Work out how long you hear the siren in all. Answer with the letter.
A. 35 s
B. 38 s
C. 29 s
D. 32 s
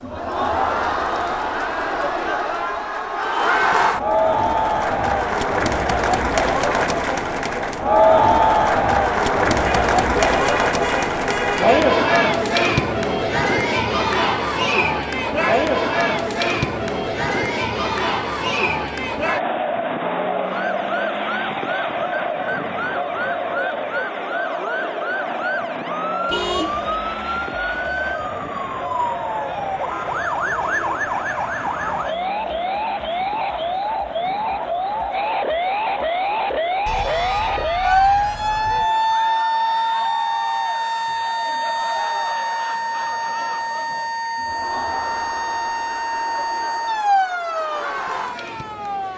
C.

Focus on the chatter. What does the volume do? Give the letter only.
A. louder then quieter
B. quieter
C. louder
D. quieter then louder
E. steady
B.